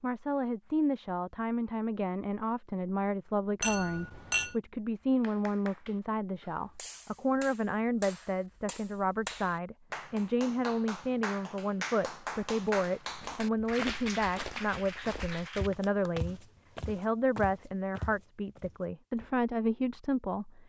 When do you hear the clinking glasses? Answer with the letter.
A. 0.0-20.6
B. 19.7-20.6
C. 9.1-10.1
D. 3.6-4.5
D.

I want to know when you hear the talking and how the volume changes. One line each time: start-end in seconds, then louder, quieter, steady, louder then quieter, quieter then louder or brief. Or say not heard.
0.0-20.6 steady.